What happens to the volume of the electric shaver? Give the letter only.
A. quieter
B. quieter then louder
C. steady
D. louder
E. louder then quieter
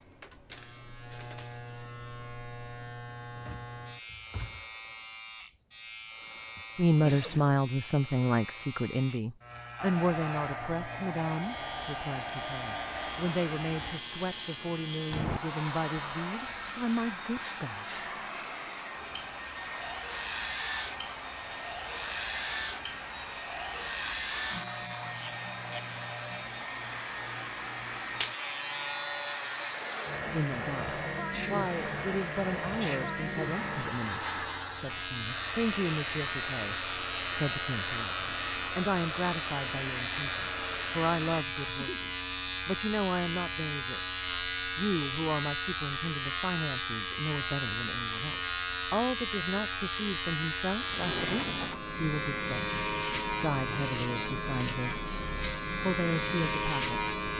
D.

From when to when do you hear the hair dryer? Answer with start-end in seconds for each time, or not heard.
9.8-41.5.